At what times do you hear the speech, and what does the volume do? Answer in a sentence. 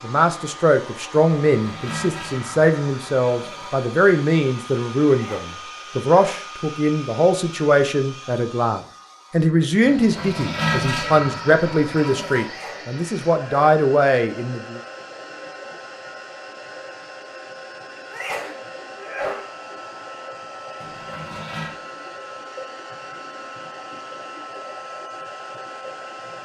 You can hear the speech from 0.0 to 14.8 s, at a steady volume.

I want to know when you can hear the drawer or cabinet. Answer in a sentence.
The drawer or cabinet can't be heard in this clip.